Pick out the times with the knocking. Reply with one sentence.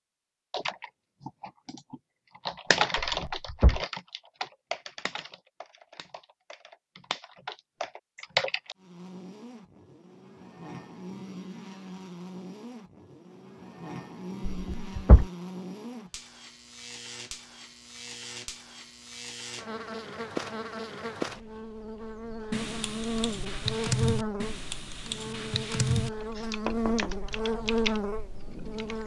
The knocking can be heard from 3.0 to 3.8 s, from 14.5 to 15.2 s and from 26.6 to 27.1 s.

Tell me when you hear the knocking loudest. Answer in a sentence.
The volume of the knocking peaks at 15 seconds.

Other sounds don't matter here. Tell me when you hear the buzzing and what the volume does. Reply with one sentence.
The buzzing can be heard from 8.8 to 29.0 s, getting louder.